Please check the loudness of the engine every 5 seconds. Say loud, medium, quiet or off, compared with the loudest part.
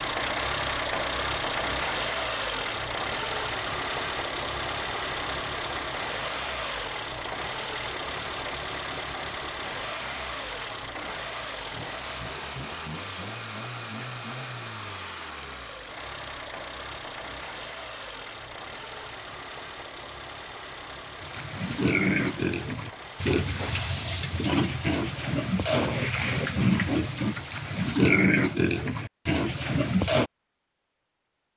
loud, loud, medium, medium, quiet, quiet, off.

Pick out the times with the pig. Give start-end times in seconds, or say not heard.
21.2-30.3.